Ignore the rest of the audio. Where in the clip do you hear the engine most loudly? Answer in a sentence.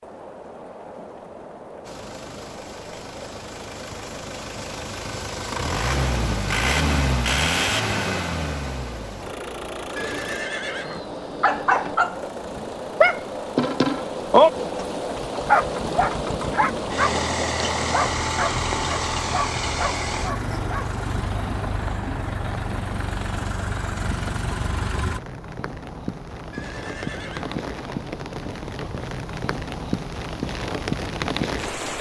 The loudest moment of the engine is at 7 seconds.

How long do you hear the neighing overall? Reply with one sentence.
The neighing can be heard for 4 seconds in total.